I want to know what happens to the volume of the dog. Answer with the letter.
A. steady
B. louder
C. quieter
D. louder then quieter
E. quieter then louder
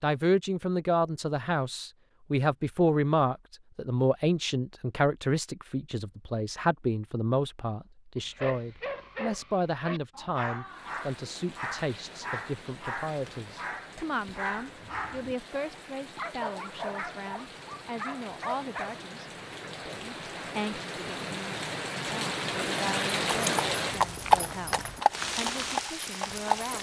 A.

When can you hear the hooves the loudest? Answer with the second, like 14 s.
24 s.